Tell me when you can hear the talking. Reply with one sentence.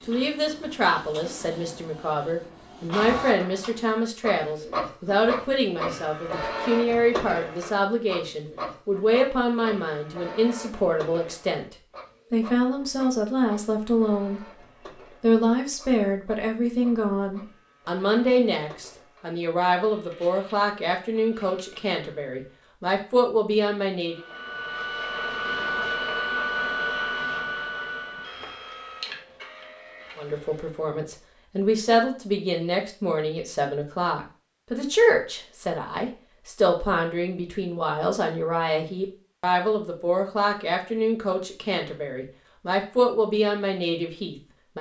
The talking can be heard from 0.1 to 14.4 s, from 15.2 to 24.2 s and from 30.1 to 44.7 s.